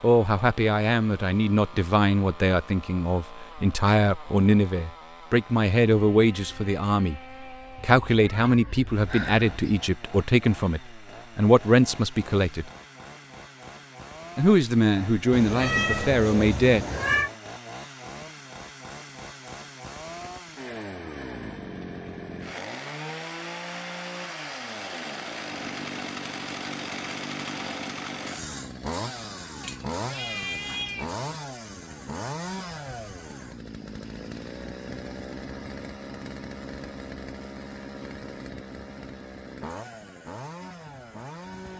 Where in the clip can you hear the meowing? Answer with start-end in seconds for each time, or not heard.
7.8-9.8, 15.3-17.3, 29.6-31.1.